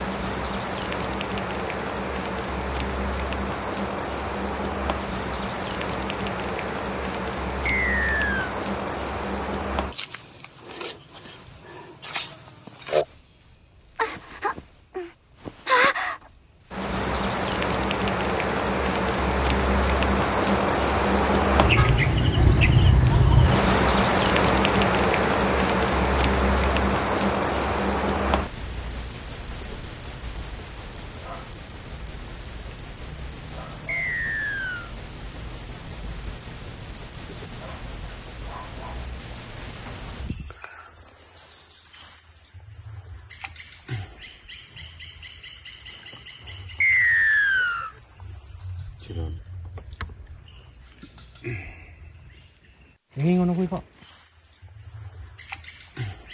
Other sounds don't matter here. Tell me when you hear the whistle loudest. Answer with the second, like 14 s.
47 s.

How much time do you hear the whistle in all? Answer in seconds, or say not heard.
3 s.